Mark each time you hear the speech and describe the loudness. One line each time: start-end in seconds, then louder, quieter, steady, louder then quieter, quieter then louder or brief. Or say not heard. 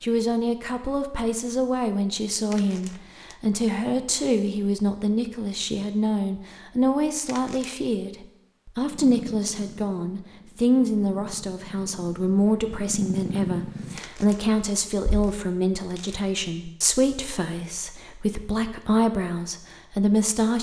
0.0-20.5 steady.